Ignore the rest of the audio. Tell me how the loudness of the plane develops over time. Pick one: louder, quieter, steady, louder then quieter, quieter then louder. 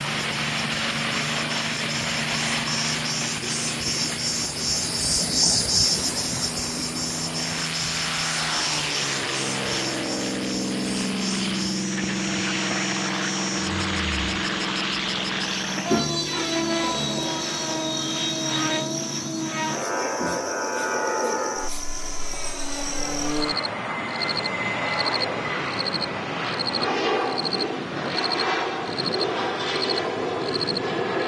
steady.